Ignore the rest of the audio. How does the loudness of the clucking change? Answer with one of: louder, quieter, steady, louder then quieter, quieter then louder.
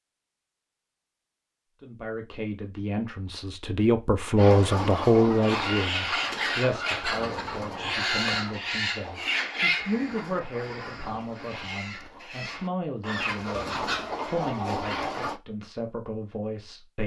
quieter then louder.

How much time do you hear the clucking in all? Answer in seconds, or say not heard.
11 s.